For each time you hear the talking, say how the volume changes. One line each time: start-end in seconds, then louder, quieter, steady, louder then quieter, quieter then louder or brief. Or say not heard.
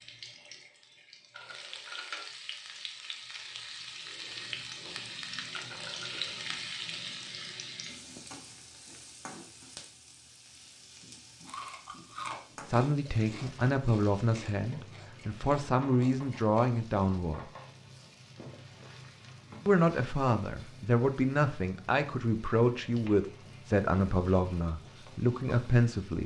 12.7-17.4 quieter then louder
19.6-26.2 steady.